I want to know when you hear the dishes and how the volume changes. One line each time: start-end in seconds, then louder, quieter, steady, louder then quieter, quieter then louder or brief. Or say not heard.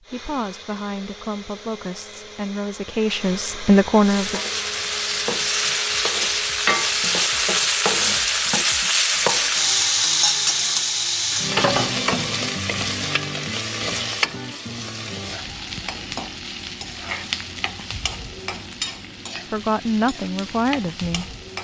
not heard.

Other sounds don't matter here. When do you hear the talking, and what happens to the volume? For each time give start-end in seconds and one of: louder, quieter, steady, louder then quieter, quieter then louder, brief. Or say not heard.
0.0-4.4 louder
19.5-21.2 brief.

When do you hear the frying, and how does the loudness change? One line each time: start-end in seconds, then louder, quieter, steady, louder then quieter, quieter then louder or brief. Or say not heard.
4.0-21.5 quieter.